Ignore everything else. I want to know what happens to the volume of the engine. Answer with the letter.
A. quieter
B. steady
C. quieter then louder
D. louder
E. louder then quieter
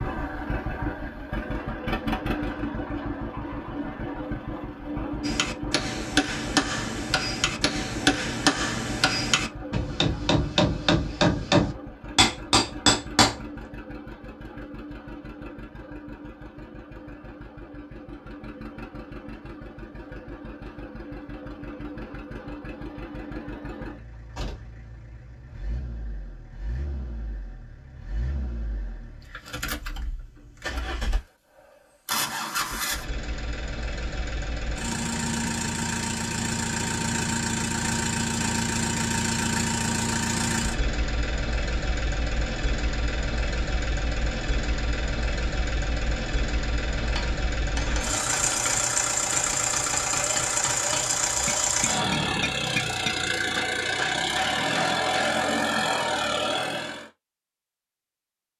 C.